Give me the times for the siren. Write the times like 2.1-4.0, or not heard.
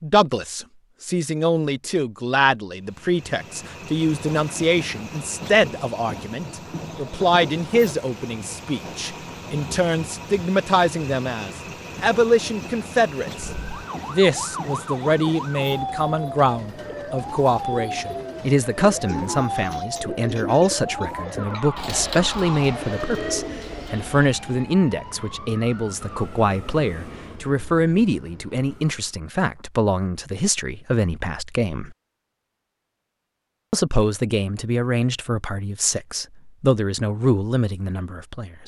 13.3-26.2.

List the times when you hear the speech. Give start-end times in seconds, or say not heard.
0.0-13.5, 14.1-31.9, 33.7-38.6.